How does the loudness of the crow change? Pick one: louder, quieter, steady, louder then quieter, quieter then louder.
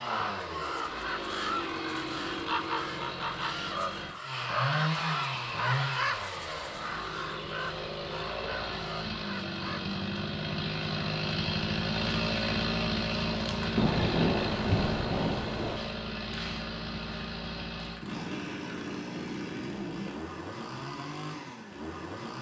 quieter.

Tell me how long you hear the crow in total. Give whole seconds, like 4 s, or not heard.
10 s.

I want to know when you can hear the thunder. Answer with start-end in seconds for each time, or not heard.
13.8-15.8.